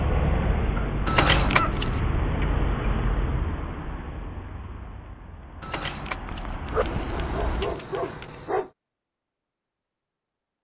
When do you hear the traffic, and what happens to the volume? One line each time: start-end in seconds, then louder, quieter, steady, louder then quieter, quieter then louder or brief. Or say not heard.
0.0-7.8 quieter then louder.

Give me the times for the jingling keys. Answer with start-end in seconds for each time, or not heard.
1.1-2.0, 5.6-8.3.